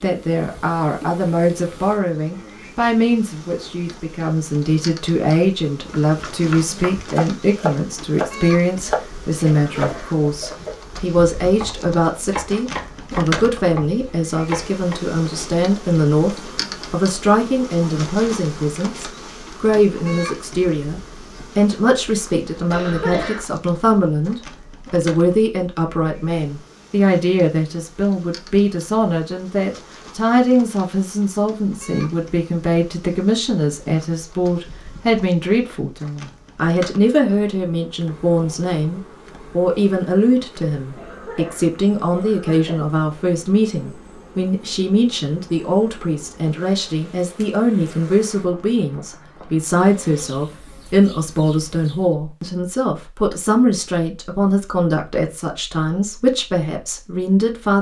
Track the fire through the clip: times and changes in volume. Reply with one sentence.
The fire can't be heard in this clip.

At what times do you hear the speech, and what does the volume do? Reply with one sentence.
You can hear the speech from 0.0 to 57.7 s, at a steady volume.